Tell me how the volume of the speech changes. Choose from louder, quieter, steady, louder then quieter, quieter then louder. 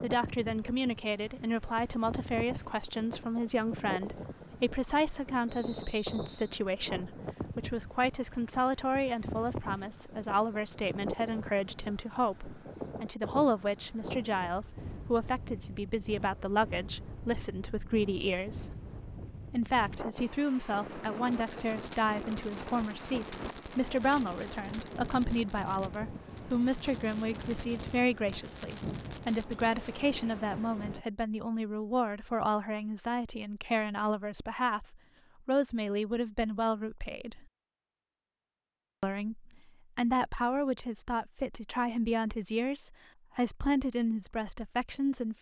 steady.